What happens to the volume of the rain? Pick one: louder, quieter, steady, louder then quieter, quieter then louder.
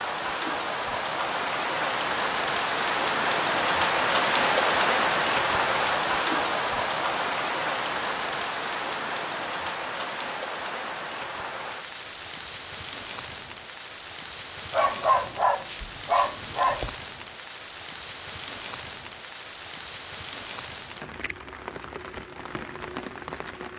quieter.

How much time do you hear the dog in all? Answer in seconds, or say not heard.
2 s.